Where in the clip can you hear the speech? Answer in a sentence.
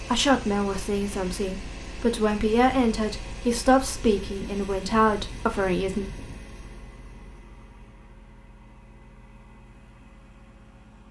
The speech can be heard from 0.0 to 6.0 s.